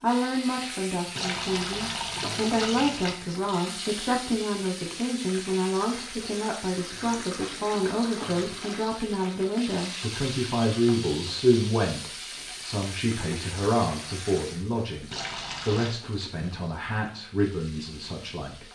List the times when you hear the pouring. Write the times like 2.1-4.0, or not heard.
1.1-3.1, 6.8-8.8, 15.1-15.9.